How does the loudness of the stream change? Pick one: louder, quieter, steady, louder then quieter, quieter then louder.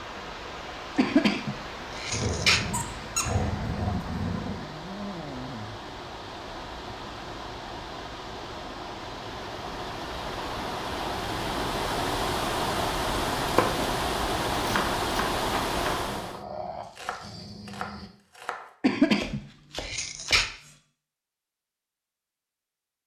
louder.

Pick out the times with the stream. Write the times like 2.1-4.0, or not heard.
0.0-16.4.